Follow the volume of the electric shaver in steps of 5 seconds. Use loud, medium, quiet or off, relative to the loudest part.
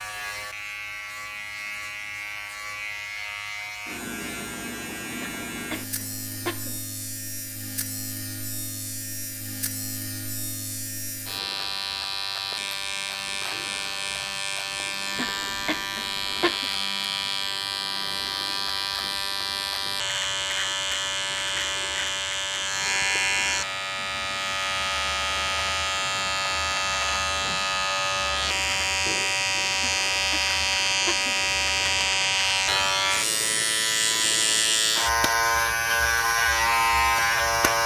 quiet, quiet, medium, medium, medium, loud, loud, loud.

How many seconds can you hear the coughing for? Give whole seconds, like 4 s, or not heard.
5 s.